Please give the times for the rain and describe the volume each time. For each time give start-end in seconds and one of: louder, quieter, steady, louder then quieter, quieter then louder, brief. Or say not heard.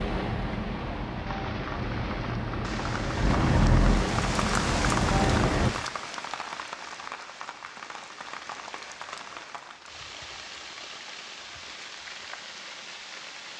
0.0-13.5 louder then quieter.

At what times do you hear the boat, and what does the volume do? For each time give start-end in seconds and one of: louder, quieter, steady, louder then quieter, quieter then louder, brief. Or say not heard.
0.0-5.7 louder.